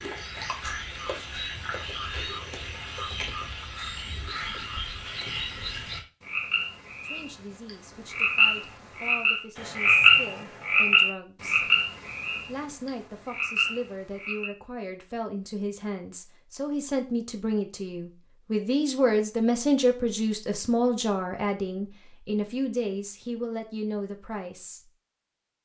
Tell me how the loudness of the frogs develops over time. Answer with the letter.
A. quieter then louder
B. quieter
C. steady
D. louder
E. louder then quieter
E.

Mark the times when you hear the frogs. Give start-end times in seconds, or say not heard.
0.0-14.5.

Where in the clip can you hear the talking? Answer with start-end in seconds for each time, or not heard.
7.0-11.7, 12.4-24.9.